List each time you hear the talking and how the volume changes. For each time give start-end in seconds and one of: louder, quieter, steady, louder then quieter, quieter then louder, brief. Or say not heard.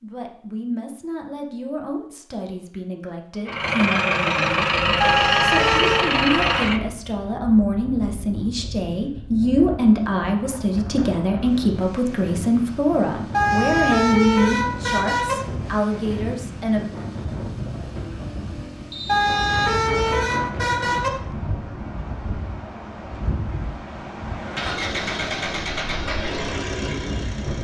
0.0-16.9 louder.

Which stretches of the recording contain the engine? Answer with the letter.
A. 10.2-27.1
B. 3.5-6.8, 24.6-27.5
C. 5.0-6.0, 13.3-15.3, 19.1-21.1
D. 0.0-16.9
B.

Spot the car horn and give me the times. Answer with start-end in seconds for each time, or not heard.
5.0-6.0, 13.3-15.3, 19.1-21.1.